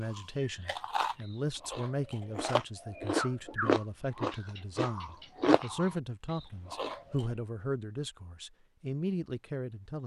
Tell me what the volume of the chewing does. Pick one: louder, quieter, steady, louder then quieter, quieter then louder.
louder then quieter.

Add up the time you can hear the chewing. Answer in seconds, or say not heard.
7 s.